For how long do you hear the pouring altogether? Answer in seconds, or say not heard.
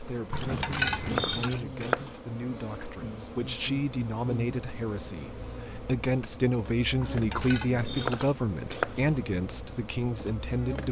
3 s.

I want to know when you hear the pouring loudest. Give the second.
1 s.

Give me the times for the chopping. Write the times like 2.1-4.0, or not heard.
0.5-2.1, 7.4-9.1.